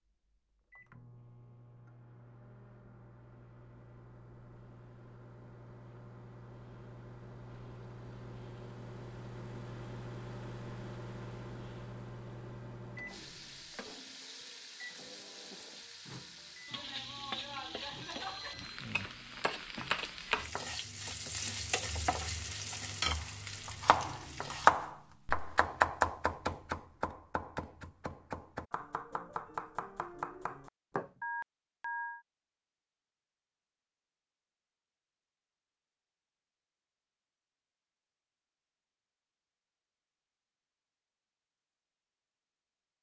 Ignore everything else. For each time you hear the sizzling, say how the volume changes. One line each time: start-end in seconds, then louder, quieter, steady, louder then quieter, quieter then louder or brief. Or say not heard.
13.1-24.7 louder.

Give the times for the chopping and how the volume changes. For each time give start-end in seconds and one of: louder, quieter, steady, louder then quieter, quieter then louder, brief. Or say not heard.
23.1-31.1 quieter.